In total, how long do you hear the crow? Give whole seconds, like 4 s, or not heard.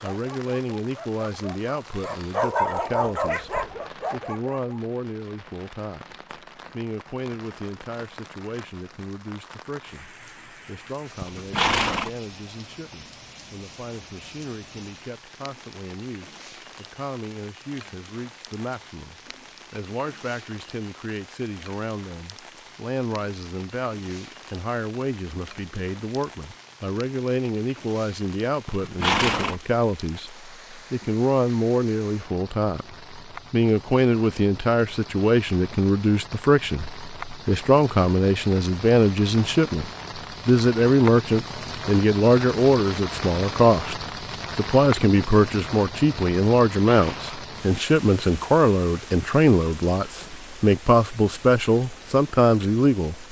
not heard.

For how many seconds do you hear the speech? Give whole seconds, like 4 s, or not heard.
53 s.